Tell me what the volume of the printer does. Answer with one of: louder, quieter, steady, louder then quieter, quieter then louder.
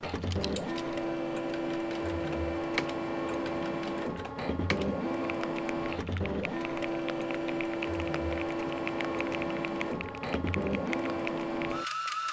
steady.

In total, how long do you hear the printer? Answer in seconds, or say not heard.
12 s.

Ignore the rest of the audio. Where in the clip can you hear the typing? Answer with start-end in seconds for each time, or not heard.
0.1-12.1.